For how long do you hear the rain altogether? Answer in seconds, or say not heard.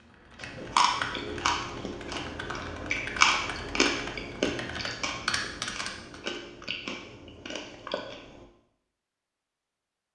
not heard.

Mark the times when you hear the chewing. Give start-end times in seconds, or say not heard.
0.4-8.4.